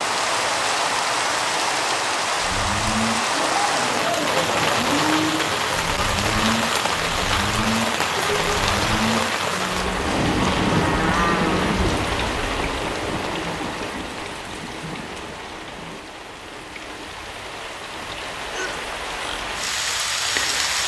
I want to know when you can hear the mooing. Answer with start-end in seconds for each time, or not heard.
2.4-12.7.